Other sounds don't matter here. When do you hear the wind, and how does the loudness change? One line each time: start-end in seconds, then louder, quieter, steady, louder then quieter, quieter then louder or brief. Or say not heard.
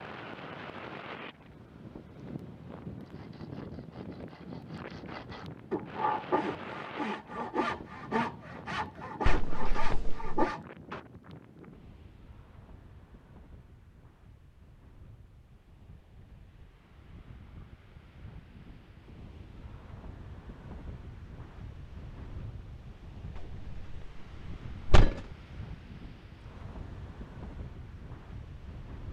0.0-29.0 quieter then louder.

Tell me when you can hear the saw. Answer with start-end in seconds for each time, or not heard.
3.0-11.0.